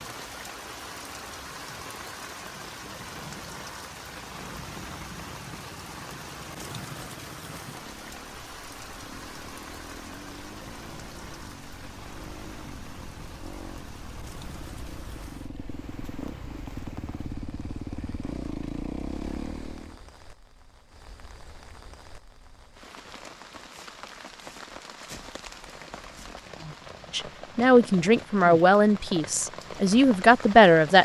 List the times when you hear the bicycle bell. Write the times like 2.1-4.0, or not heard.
not heard.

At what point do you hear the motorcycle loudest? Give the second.
19 s.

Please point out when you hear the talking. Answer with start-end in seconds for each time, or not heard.
27.1-30.9.